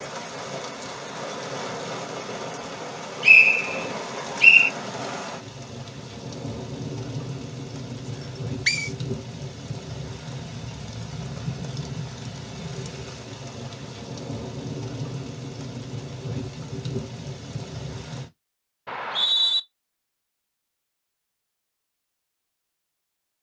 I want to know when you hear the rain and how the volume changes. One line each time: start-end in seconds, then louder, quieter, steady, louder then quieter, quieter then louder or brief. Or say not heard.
0.0-18.3 steady.